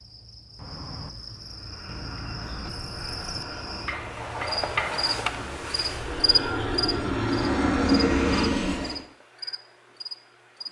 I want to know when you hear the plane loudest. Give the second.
8 s.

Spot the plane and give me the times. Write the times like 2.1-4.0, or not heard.
1.6-9.1.